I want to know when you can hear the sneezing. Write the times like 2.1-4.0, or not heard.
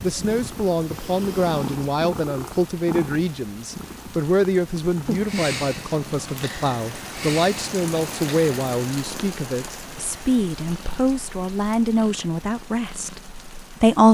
not heard.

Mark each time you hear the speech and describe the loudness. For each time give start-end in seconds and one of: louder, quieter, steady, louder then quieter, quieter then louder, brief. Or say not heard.
0.0-14.0 steady.